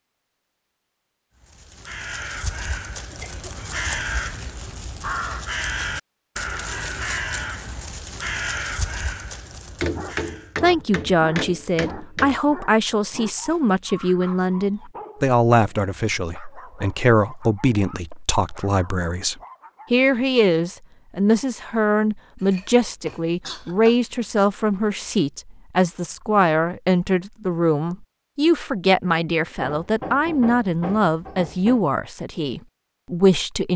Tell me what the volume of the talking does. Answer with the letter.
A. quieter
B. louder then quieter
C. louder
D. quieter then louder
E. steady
E.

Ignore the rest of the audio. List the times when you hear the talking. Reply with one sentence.
You can hear the talking from 10.6 to 33.7 s.